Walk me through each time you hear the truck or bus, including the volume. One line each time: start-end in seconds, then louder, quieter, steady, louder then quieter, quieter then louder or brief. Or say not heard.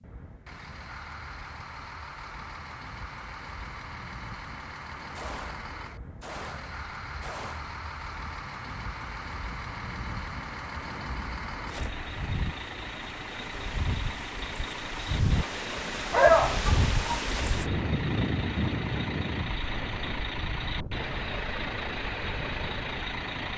0.0-23.5 louder.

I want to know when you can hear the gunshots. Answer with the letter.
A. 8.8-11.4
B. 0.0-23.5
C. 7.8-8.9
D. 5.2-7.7
D.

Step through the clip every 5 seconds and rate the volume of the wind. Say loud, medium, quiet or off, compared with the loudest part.
quiet, quiet, medium, loud, medium.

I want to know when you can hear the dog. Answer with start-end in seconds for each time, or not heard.
16.1-17.2.